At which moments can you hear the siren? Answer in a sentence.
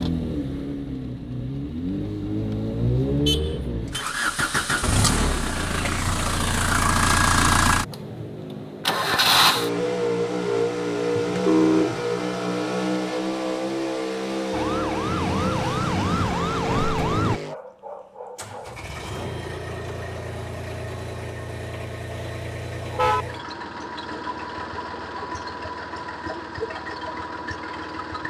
The siren can be heard from 14.5 to 17.4 s.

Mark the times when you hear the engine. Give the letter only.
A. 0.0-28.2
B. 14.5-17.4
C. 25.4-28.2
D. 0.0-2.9
A.